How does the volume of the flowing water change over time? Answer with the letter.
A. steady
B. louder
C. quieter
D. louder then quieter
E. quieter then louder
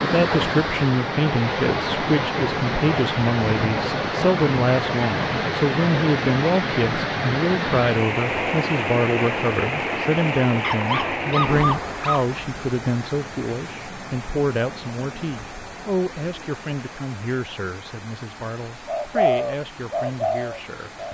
C.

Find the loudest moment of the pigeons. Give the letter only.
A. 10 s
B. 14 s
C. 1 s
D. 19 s
D.